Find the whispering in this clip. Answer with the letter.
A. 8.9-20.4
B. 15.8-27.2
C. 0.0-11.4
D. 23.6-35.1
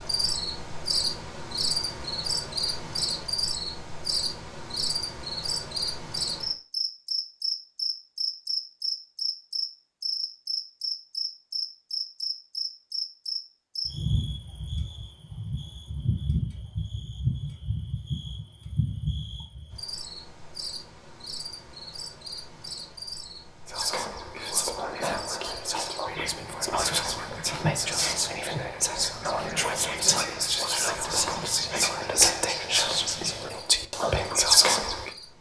D.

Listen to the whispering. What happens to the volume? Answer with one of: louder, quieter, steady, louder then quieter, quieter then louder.
louder.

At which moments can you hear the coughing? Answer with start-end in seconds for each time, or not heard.
not heard.